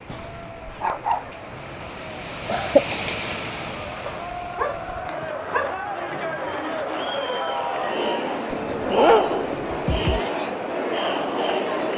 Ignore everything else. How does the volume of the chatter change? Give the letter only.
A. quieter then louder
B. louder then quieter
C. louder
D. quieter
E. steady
C.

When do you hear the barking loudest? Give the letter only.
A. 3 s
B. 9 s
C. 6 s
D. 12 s
B.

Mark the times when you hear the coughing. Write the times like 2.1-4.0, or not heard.
2.5-3.1.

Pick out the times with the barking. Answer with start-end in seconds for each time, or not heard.
0.1-1.3, 4.0-5.8, 8.5-10.2.